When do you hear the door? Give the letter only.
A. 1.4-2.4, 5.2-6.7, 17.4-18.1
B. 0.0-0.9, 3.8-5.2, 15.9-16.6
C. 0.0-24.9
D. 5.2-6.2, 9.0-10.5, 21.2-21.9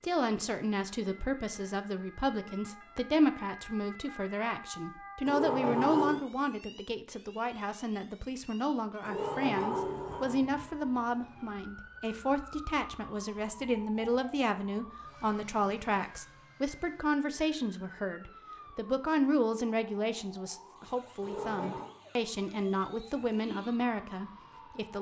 D.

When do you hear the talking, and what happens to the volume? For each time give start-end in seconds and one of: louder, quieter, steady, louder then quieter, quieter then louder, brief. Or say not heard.
0.0-24.9 steady.